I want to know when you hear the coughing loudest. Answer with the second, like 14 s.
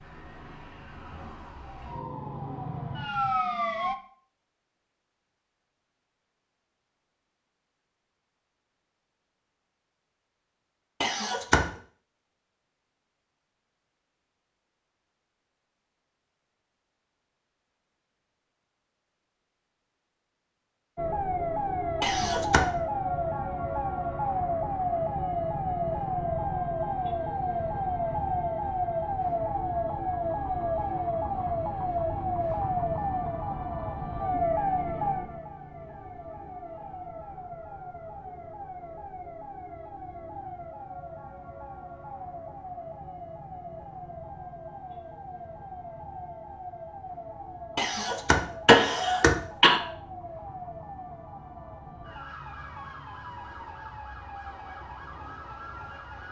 49 s.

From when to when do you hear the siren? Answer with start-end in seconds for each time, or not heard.
0.0-4.0, 20.9-56.2.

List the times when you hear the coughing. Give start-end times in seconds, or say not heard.
11.0-11.7, 22.0-22.7, 47.8-49.8.